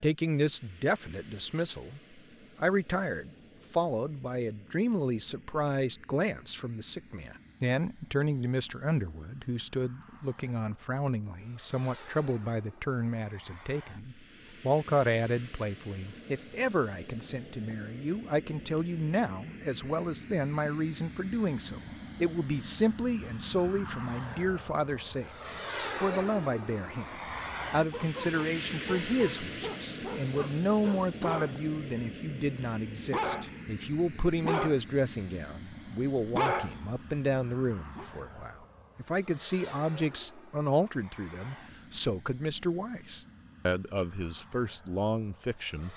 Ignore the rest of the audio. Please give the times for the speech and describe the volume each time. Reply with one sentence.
You can hear the speech from 0.0 to 45.9 s, at a steady volume.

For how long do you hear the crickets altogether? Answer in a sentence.
The crickets can't be heard in this clip.